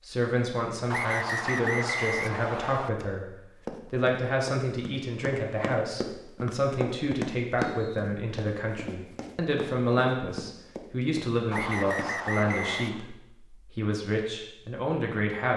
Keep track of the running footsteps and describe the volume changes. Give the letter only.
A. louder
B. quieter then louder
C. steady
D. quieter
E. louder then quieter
E.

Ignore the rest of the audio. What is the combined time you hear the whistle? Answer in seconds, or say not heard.
5 s.